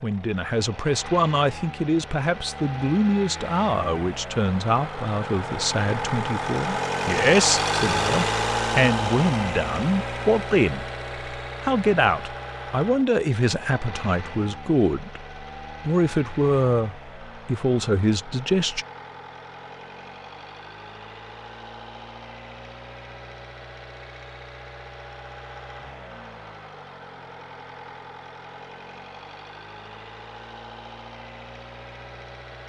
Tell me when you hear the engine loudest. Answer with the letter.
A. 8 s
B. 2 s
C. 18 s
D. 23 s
A.